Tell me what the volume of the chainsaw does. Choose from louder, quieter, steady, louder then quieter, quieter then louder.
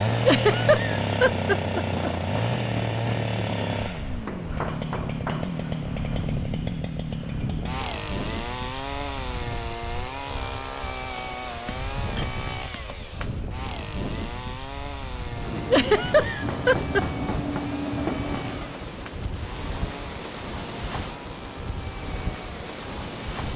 quieter.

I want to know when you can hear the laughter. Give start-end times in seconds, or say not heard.
0.2-2.1, 15.7-17.1.